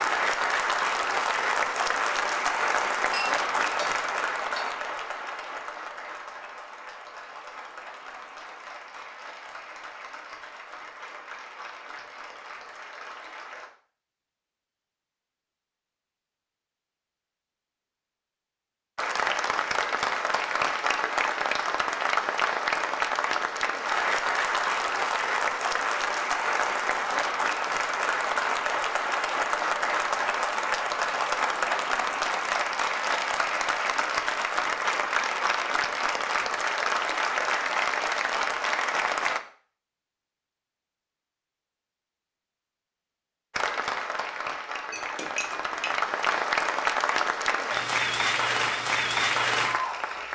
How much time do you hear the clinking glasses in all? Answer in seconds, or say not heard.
3 s.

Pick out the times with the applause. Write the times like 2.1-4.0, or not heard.
0.0-13.7, 18.9-39.4, 43.5-50.3.